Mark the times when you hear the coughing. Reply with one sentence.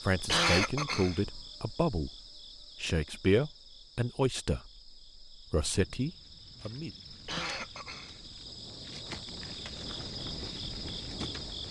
The coughing can be heard from 0.1 to 1.4 s and from 7.1 to 8.3 s.